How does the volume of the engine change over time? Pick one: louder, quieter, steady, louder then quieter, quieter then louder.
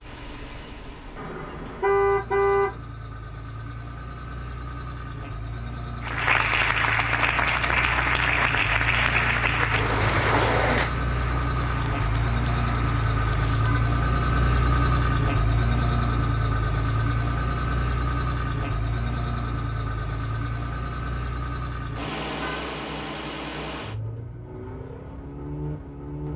louder then quieter.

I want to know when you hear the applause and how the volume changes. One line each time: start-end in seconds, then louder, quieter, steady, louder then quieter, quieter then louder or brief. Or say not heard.
6.0-13.8 quieter.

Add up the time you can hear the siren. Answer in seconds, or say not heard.
not heard.